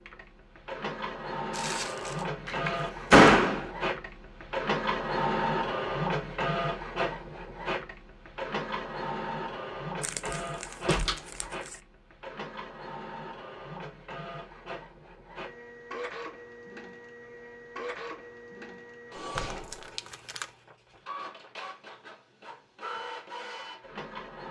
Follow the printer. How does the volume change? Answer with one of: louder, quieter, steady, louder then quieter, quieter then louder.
quieter.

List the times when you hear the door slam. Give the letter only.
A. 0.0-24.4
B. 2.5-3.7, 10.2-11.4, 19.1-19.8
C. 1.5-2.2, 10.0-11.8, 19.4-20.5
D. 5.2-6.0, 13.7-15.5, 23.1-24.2
B.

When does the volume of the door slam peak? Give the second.
3 s.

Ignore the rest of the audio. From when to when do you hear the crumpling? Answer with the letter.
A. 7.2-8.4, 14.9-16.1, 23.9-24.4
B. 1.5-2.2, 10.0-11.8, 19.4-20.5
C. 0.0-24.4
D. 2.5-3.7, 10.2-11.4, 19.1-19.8
B.